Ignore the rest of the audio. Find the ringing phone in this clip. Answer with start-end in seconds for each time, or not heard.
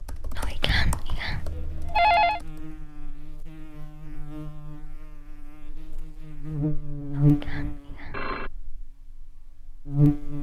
1.4-2.4, 7.9-8.5.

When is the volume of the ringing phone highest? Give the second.
2 s.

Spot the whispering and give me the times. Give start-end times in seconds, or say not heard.
0.3-1.5, 7.1-8.2.